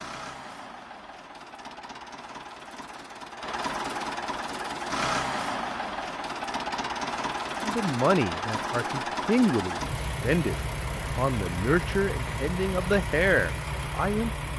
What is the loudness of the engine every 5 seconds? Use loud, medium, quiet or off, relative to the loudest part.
medium, loud, loud.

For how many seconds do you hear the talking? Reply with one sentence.
The talking can be heard for 7 seconds in total.